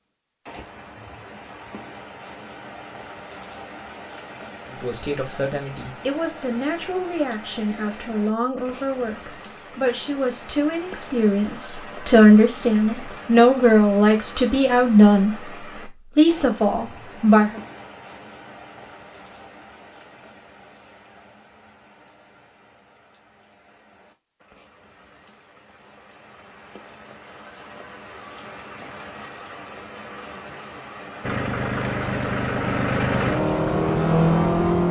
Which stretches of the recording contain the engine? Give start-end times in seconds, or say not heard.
31.2-34.8.